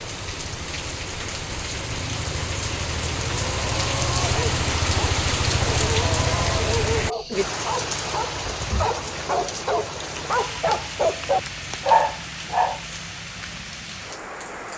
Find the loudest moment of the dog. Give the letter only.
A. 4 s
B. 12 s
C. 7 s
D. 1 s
B.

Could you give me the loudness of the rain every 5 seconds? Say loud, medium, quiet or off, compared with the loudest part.
loud, loud, medium.